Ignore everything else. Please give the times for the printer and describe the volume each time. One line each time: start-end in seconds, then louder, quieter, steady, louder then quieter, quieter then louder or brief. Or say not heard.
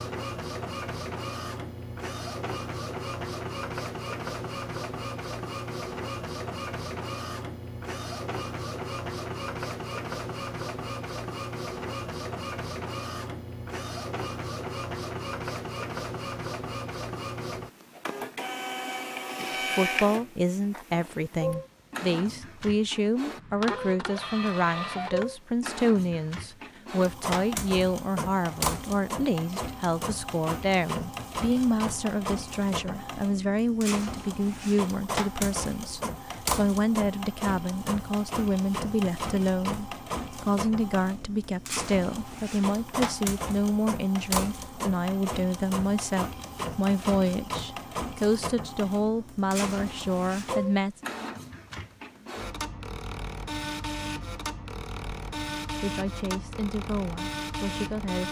0.0-58.2 steady.